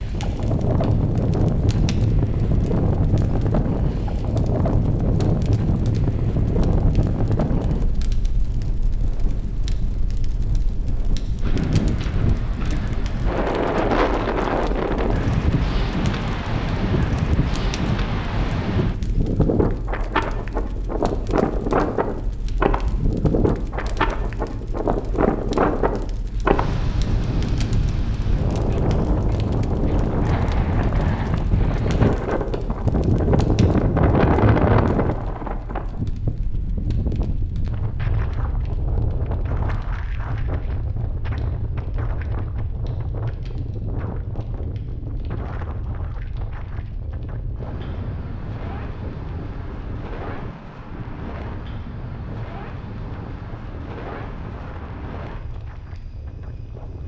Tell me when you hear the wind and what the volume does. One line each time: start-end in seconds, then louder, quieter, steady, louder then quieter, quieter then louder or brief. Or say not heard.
0.0-57.0 quieter.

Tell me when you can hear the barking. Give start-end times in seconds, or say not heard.
not heard.